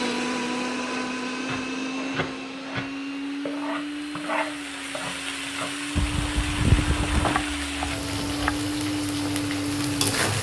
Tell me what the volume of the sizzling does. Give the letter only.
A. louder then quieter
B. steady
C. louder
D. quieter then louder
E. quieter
C.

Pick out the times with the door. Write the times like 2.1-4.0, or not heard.
6.0-7.5.